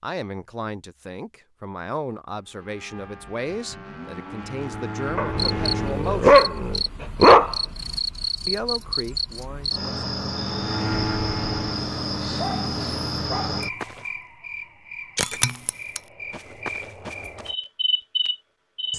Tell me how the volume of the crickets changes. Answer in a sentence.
The volume of the crickets stays about the same.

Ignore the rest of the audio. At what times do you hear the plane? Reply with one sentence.
The plane can be heard from 2.4 to 6.2 s and from 10.3 to 13.2 s.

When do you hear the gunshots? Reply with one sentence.
You can't hear the gunshots here.